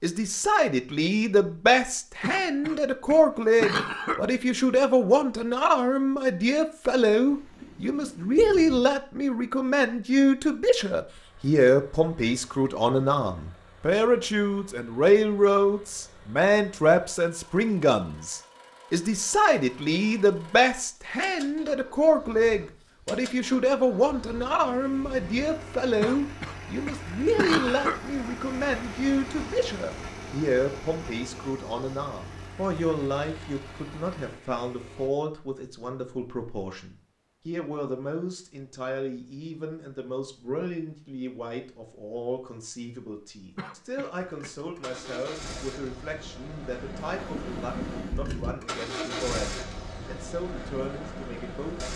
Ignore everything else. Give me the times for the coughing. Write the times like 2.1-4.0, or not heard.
2.2-4.2, 26.0-28.0, 43.5-44.5.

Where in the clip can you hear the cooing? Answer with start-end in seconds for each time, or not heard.
not heard.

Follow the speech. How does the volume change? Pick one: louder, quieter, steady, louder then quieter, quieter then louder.
quieter.